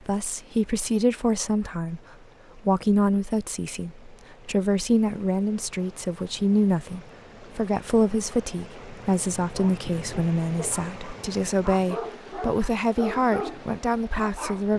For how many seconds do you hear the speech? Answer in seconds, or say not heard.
15 s.